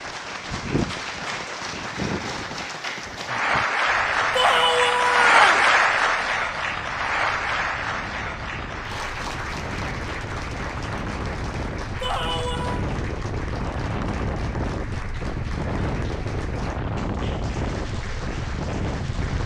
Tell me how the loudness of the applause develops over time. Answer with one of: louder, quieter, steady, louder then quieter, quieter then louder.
louder then quieter.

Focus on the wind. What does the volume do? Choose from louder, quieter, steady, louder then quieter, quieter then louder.
quieter then louder.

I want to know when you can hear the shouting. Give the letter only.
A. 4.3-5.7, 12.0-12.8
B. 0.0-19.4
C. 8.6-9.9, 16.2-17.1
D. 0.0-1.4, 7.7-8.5
A.